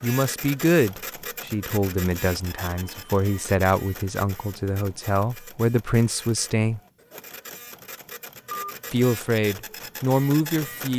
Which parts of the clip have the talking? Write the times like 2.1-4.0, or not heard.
0.0-6.8, 8.9-10.9.